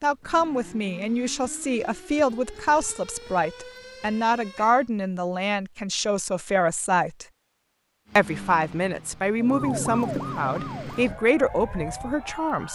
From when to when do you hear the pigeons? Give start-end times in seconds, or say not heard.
not heard.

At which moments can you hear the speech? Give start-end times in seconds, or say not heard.
0.0-7.2, 8.2-12.7.